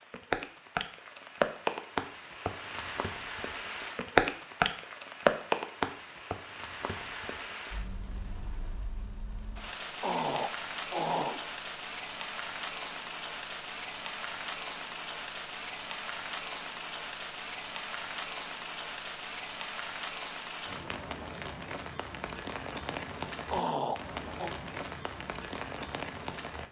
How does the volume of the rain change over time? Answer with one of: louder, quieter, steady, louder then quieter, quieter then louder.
quieter.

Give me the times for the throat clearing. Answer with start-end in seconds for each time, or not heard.
10.0-11.4, 23.5-24.5.